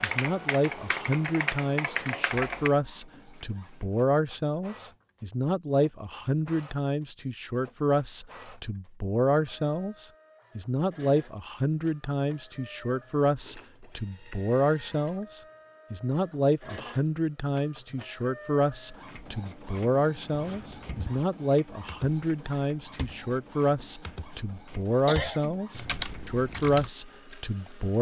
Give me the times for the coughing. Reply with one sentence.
You can hear the coughing from 25.1 to 25.6 s.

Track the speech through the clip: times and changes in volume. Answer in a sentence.
You can hear the speech from 0.0 to 27.9 s, at a steady volume.